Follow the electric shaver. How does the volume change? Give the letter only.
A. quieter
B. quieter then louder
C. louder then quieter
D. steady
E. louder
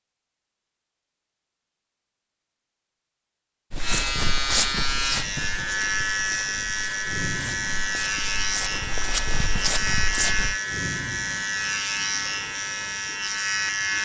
D.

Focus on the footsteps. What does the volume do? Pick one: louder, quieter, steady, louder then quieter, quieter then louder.
quieter then louder.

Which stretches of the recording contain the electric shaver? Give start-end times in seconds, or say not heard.
3.8-14.0.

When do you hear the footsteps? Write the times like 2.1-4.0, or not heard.
3.7-10.6.